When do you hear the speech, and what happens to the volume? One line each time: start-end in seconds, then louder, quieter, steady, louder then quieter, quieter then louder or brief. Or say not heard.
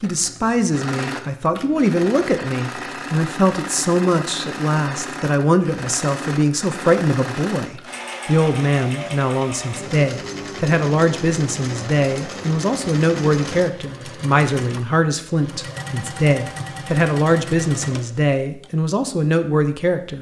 0.0-20.1 steady.